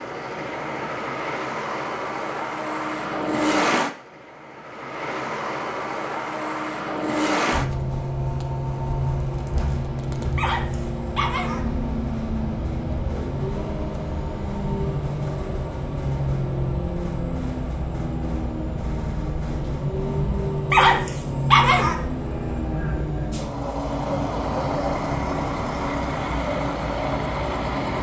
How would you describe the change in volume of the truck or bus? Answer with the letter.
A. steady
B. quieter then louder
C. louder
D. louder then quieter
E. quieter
A.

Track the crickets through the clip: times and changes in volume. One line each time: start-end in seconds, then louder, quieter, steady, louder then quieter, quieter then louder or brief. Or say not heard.
not heard.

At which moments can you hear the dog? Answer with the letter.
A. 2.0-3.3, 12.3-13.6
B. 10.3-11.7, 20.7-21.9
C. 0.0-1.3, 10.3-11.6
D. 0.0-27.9
B.